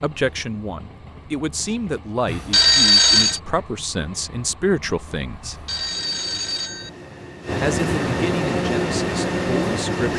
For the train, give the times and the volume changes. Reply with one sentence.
You can hear the train from 0.0 to 10.1 s, getting louder.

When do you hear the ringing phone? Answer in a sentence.
The ringing phone can be heard from 2.2 to 3.4 s and from 5.4 to 6.9 s.